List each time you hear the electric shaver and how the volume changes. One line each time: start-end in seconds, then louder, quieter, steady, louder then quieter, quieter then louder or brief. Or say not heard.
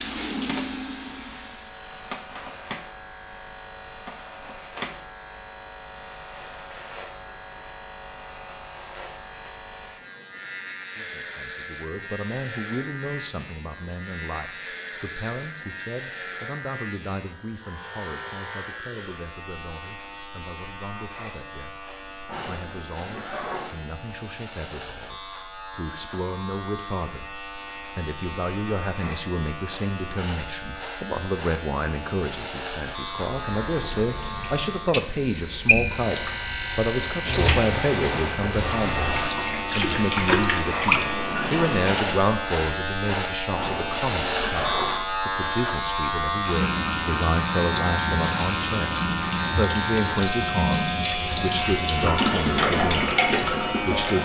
0.0-54.2 louder.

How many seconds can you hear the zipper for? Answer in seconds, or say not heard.
3 s.